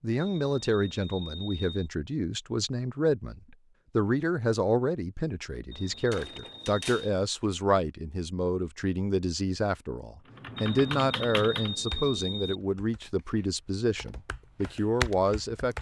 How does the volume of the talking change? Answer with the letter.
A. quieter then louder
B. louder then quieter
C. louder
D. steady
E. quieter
D.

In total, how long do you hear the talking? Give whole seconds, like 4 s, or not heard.
16 s.